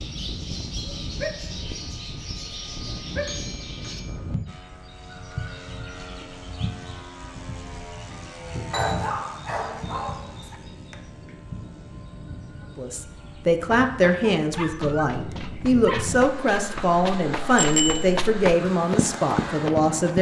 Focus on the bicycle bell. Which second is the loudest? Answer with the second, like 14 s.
18 s.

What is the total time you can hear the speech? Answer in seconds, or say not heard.
7 s.